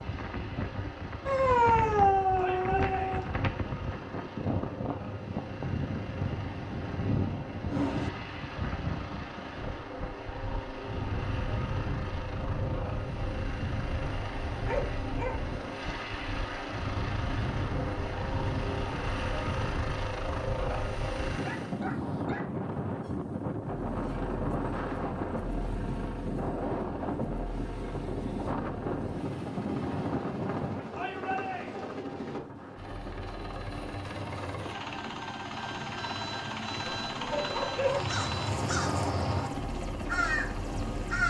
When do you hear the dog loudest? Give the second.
2 s.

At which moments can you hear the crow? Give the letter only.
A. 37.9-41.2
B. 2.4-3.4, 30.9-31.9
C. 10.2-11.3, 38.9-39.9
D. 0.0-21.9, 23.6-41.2
A.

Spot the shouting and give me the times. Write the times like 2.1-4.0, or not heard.
2.4-3.4, 30.9-31.9.